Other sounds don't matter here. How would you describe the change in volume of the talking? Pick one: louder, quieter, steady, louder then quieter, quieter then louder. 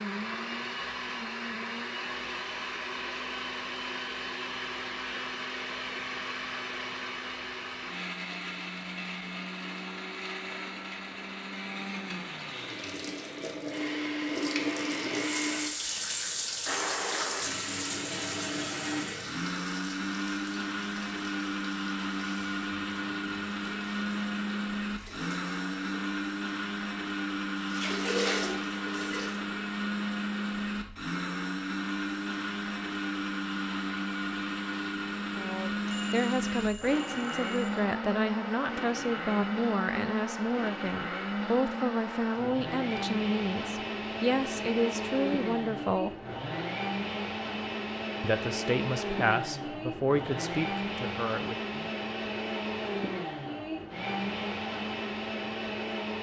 steady.